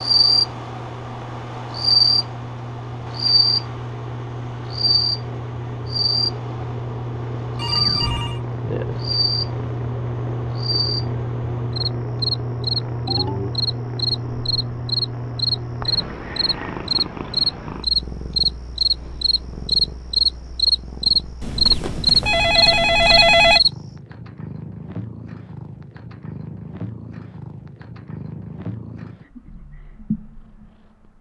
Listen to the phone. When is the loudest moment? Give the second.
23 s.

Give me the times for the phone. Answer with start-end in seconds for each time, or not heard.
7.5-8.4, 13.1-13.5, 21.4-23.6.